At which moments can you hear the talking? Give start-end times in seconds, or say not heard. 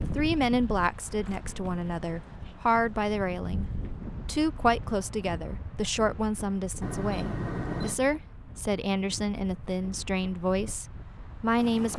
0.0-11.9.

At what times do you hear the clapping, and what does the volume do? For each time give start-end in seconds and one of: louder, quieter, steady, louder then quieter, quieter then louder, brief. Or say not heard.
not heard.